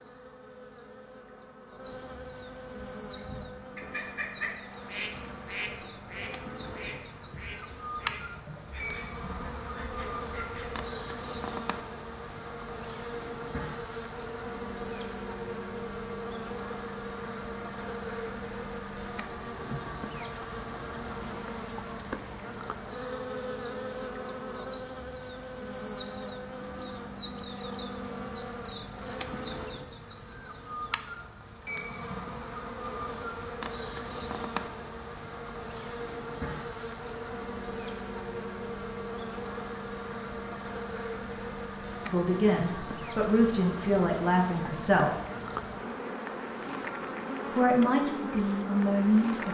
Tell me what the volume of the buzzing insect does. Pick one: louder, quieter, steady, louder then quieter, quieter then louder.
steady.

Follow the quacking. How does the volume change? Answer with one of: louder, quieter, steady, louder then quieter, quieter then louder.
quieter.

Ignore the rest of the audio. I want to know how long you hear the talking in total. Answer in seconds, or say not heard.
5 s.